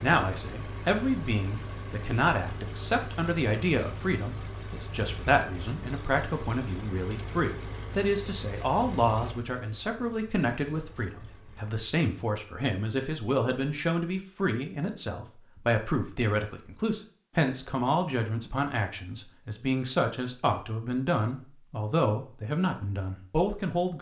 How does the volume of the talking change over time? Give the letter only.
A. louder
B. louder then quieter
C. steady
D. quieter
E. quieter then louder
C.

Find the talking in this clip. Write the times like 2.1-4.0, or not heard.
0.0-23.9.